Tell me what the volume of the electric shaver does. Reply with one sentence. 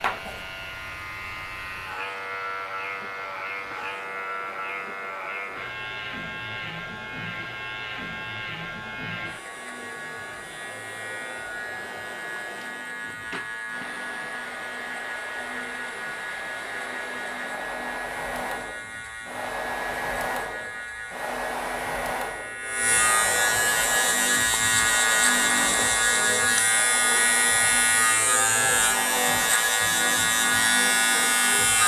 The loudness of the electric shaver goes up.